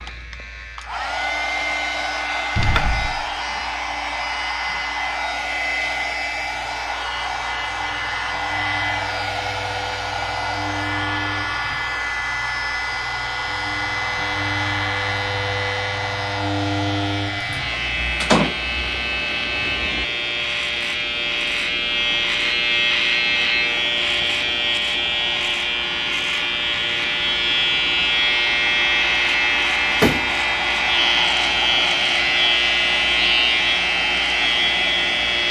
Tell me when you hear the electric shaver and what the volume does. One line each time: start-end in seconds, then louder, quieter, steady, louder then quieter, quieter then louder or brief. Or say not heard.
0.0-35.4 louder.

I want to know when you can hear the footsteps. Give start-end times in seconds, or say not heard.
not heard.